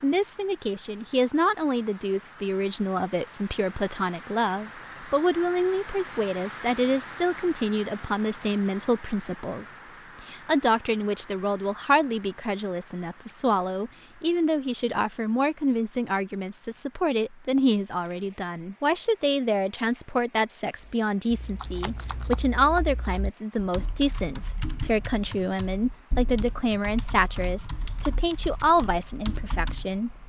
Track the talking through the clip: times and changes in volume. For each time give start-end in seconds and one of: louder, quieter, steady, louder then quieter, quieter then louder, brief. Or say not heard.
0.0-30.2 steady.